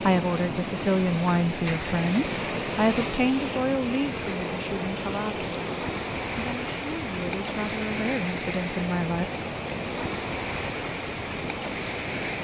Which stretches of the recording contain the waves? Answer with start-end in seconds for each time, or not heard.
0.0-12.3.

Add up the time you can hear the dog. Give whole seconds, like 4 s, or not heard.
not heard.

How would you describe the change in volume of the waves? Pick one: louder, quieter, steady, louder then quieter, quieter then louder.
steady.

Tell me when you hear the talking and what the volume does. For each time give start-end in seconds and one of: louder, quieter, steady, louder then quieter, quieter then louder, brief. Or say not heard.
0.0-5.5 quieter
6.3-9.2 brief.